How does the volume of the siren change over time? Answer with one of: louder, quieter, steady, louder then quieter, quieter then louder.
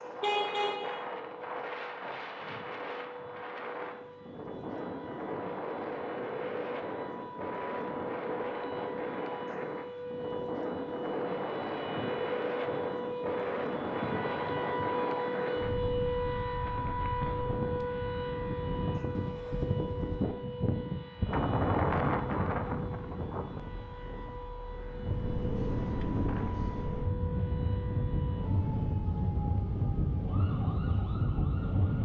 louder then quieter.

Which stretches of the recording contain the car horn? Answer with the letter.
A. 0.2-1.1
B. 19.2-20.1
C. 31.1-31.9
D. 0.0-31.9
A.